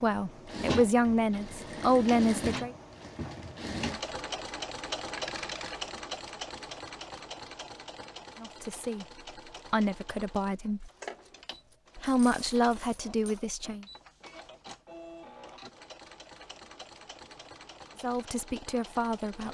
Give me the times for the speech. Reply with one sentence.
The speech can be heard from 0.0 to 2.8 s, from 8.3 to 10.9 s, from 11.9 to 13.8 s and from 18.0 to 19.5 s.